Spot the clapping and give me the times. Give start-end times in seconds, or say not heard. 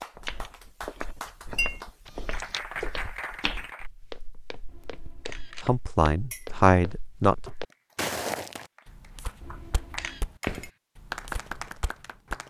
0.0-3.9, 7.4-12.4.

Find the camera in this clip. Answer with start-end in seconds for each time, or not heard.
2.0-2.6, 4.7-5.8, 9.4-10.2.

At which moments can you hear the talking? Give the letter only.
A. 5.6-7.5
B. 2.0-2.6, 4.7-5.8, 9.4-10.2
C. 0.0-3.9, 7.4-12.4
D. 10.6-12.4
A.